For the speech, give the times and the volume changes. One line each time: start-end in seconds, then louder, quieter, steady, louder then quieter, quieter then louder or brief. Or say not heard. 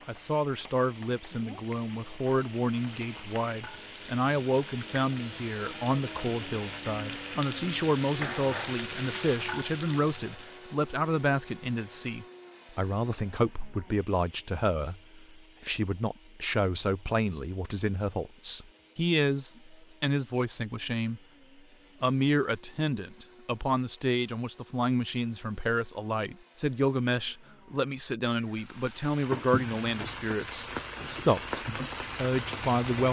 0.1-21.2 steady
22.0-33.0 steady.